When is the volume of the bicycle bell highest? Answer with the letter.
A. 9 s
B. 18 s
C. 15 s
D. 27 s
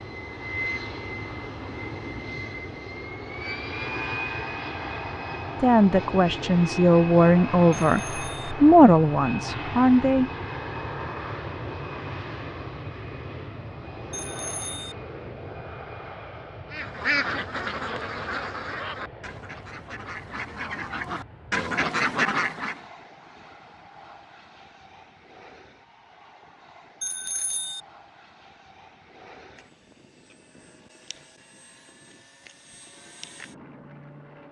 D.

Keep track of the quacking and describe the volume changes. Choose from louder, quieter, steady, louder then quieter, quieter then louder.
quieter then louder.